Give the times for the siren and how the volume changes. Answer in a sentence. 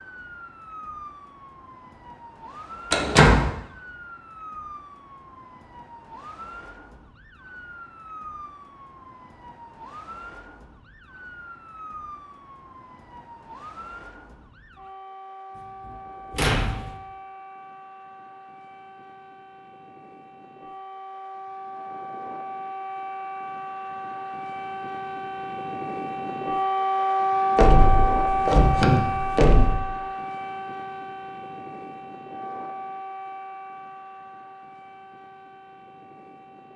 You can hear the siren from 0.0 to 36.7 s, getting louder then quieter.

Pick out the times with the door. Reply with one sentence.
You can hear the door from 2.9 to 3.5 s, from 15.8 to 16.9 s and from 27.6 to 29.8 s.